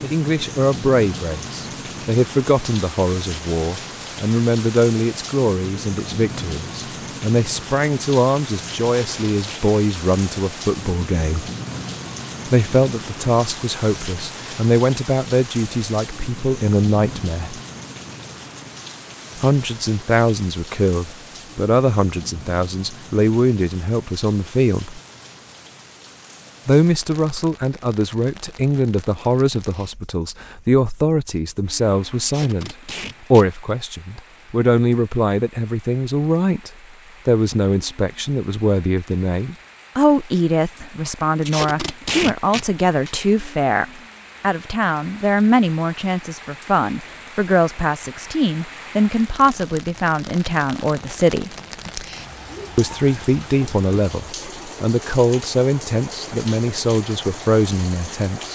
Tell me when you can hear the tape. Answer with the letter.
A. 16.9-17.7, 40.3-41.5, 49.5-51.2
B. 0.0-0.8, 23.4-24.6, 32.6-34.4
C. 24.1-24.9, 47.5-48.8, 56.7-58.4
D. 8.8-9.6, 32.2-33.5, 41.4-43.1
D.